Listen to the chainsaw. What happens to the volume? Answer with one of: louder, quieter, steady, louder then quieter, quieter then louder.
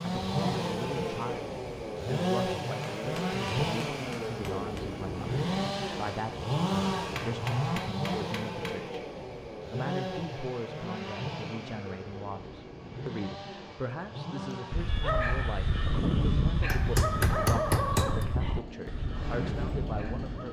quieter.